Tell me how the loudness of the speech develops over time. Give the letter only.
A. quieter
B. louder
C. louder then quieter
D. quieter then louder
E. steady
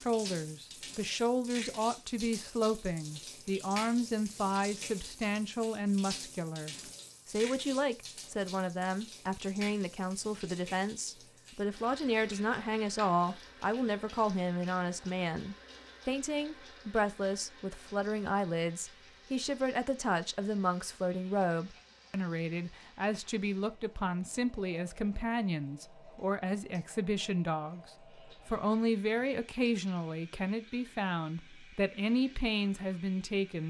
E.